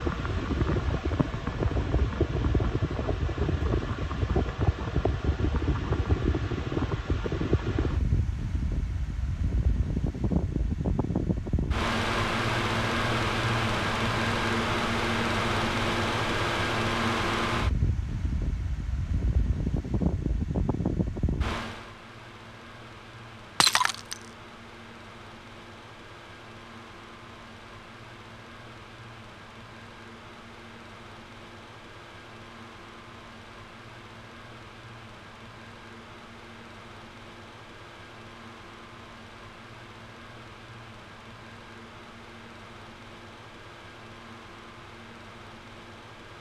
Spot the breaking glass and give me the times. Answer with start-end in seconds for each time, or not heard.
23.6-24.1.